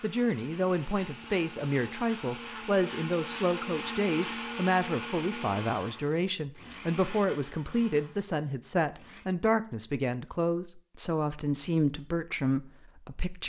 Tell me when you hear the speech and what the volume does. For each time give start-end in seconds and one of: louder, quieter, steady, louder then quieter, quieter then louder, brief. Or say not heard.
0.0-13.4 steady.